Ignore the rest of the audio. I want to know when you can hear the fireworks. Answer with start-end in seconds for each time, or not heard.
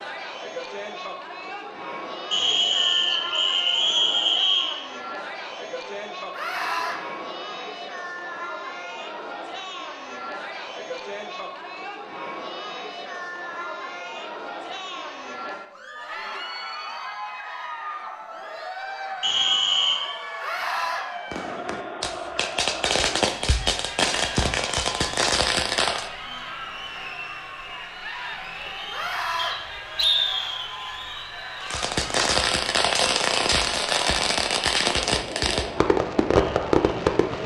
21.3-26.1, 31.6-37.4.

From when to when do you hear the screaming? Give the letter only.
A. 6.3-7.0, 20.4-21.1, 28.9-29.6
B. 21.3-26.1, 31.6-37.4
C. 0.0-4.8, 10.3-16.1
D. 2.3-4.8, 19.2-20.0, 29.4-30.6
A.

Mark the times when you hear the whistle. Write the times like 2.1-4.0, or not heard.
2.3-4.8, 19.2-20.0, 29.4-30.6.